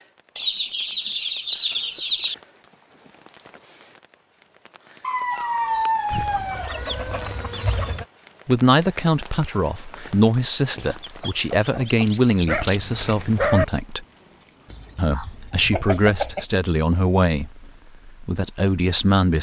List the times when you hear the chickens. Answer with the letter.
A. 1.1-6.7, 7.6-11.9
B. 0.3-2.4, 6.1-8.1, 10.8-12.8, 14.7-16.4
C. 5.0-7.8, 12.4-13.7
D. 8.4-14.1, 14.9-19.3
B.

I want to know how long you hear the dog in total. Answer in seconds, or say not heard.
4 s.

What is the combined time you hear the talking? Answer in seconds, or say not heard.
10 s.